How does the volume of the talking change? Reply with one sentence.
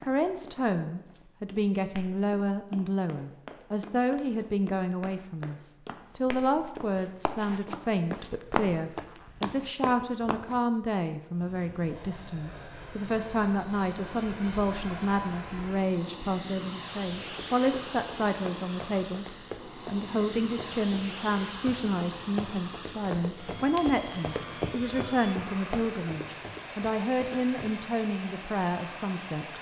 The loudness of the talking stays about the same.